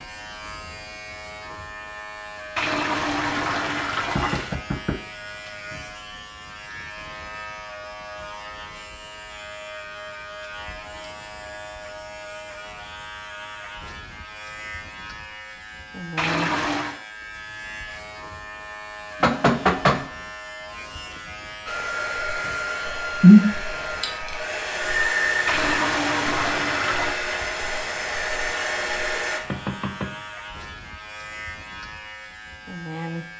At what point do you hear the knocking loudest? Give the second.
20 s.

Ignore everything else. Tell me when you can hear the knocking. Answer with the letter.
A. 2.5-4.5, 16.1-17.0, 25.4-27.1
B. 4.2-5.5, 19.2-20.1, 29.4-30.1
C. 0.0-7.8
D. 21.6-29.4
B.